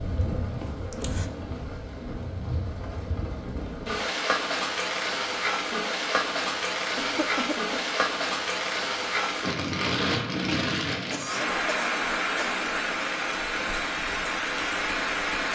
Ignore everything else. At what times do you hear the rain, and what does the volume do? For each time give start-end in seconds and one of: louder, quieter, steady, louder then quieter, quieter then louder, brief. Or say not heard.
0.0-15.5 louder.